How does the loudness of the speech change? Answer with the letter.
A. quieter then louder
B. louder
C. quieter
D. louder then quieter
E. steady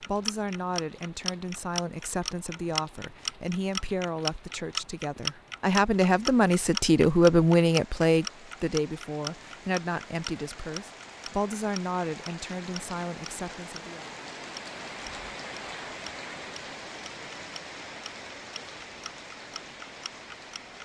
D.